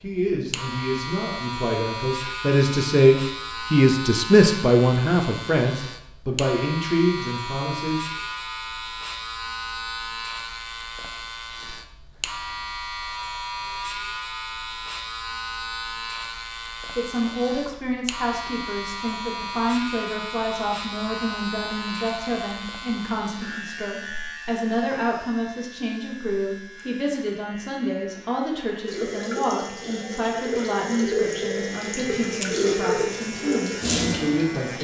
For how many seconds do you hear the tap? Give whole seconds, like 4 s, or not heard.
6 s.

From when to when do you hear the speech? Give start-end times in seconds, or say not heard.
0.0-8.1, 16.9-34.7.